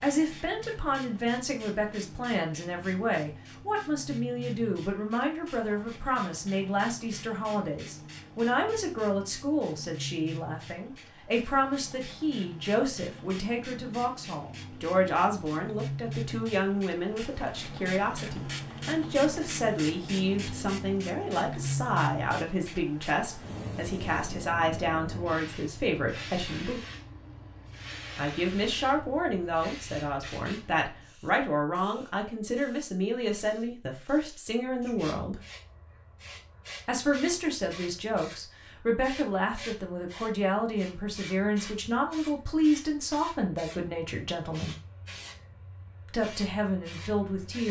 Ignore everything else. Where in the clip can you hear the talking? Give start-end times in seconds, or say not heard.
0.0-26.8, 28.1-35.4, 36.9-44.8, 46.1-47.6.